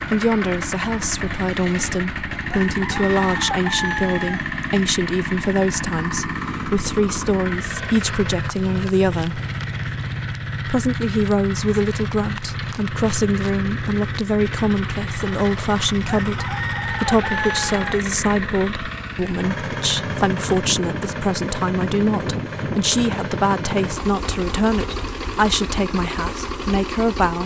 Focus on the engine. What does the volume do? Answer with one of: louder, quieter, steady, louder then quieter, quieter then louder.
steady.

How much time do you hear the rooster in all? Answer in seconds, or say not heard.
4 s.